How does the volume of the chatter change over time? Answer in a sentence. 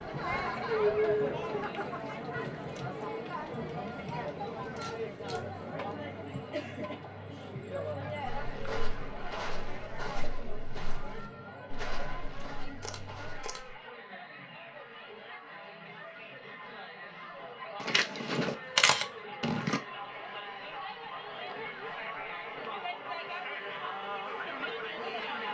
The loudness of the chatter goes down, then up.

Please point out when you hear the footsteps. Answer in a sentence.
The footsteps can be heard from 8.2 to 13.8 s.